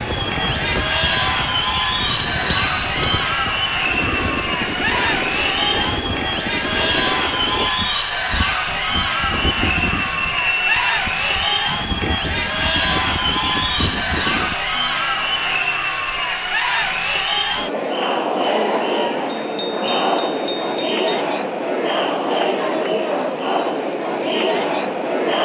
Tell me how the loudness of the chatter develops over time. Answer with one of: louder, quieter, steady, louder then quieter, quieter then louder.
steady.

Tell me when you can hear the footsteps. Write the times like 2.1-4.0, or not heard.
not heard.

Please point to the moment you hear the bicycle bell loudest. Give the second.
11 s.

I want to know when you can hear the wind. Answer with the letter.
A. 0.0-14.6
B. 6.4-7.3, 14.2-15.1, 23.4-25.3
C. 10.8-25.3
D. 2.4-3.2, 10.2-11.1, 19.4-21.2
A.